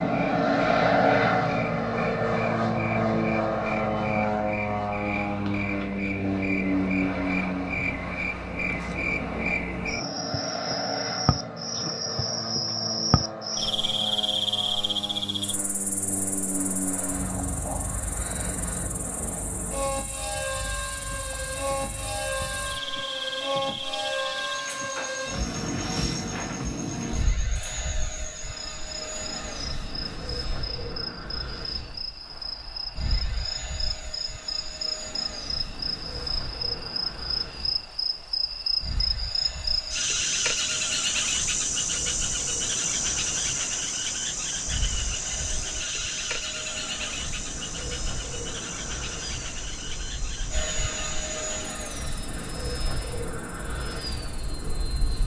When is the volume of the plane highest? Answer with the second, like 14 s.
1 s.